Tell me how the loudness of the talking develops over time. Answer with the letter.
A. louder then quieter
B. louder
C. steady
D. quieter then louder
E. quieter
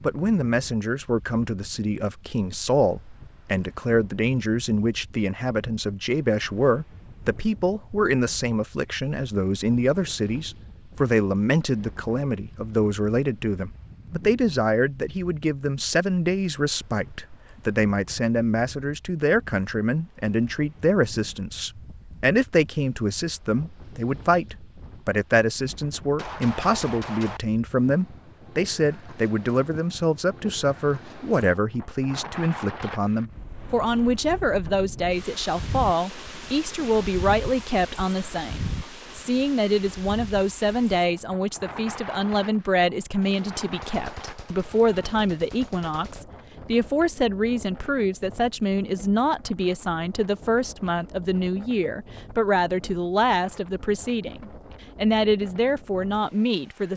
C.